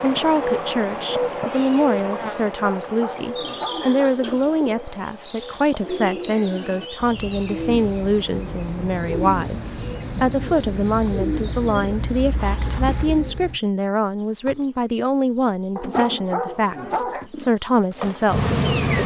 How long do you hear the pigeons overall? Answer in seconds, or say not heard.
10 s.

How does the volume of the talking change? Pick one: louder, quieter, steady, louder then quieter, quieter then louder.
steady.